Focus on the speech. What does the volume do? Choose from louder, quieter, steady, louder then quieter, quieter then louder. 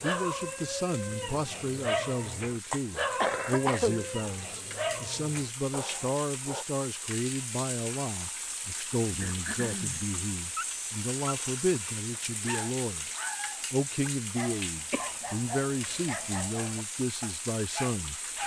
steady.